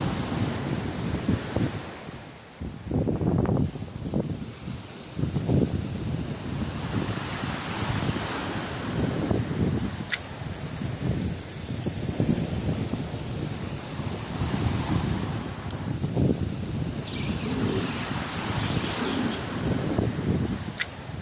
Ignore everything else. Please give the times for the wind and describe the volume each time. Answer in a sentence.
The wind can be heard from 0.0 to 21.1 s, at a steady volume.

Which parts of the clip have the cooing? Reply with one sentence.
The cooing can be heard from 17.1 to 19.5 s.